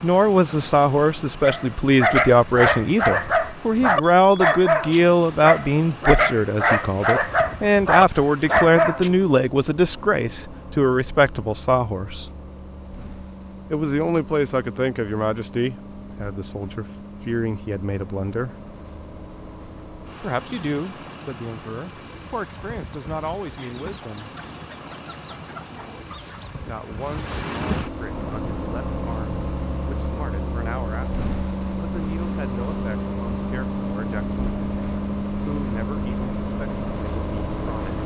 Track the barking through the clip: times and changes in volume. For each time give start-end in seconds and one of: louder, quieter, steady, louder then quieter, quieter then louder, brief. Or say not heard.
1.4-9.2 steady.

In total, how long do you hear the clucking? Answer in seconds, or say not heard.
3 s.